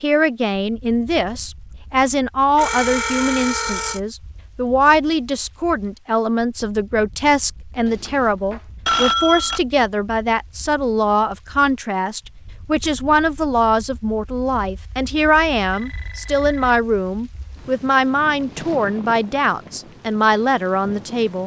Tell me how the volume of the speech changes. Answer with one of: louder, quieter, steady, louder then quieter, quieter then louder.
steady.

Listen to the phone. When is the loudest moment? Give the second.
9 s.